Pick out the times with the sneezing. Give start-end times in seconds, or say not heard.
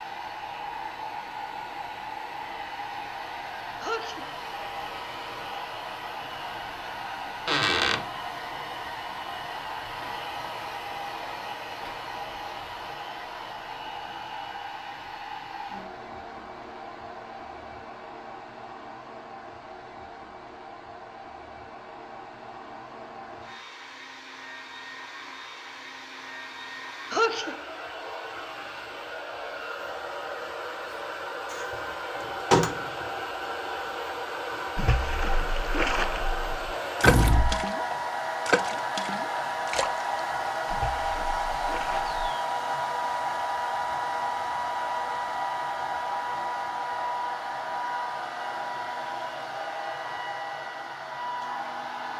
3.8-4.3, 27.1-27.6.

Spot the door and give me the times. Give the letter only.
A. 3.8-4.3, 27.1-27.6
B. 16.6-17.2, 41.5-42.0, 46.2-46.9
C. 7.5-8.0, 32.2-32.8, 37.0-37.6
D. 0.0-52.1
C.